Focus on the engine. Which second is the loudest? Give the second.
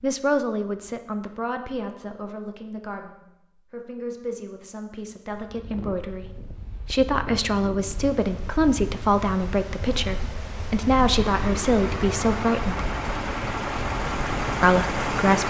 15 s.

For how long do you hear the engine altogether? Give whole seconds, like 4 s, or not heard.
4 s.